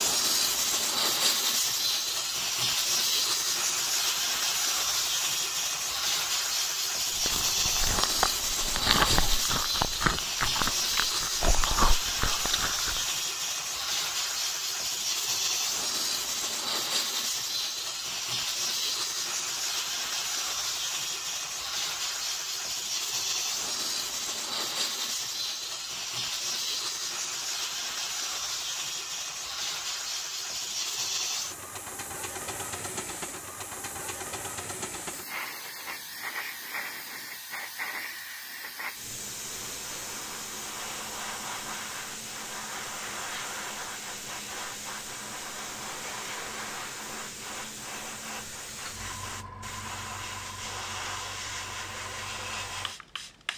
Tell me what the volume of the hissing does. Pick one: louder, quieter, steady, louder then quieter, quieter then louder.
quieter.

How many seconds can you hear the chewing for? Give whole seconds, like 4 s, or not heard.
6 s.